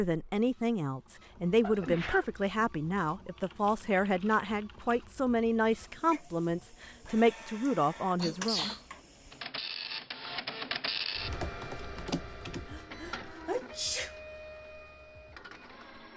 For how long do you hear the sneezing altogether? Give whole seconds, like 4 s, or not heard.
3 s.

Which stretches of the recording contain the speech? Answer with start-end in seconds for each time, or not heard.
0.0-8.7.